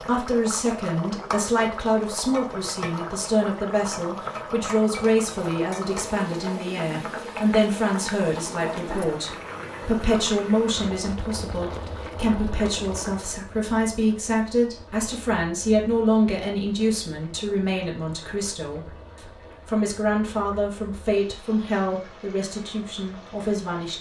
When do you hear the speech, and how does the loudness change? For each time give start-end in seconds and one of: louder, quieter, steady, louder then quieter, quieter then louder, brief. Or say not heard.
0.1-23.9 steady.